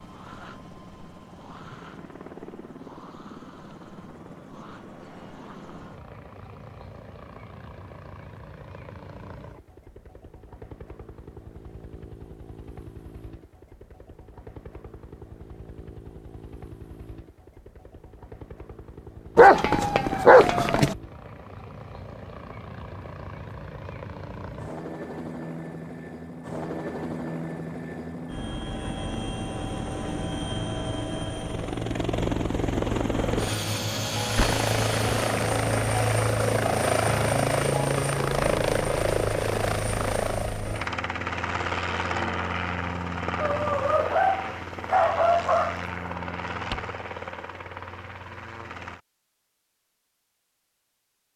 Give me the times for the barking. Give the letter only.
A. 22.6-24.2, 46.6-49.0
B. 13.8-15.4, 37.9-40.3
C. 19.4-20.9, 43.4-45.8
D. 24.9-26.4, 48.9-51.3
C.